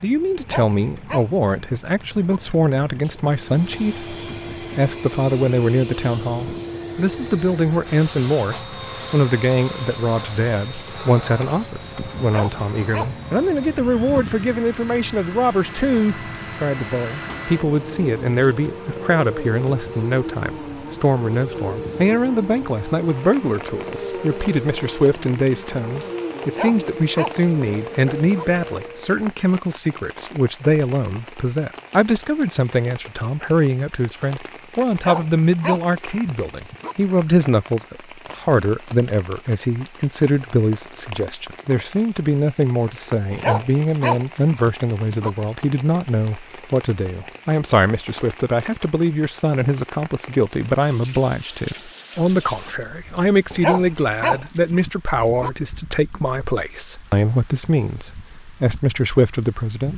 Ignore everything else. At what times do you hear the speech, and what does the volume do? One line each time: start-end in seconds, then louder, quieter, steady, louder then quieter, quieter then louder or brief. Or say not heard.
0.0-59.9 steady.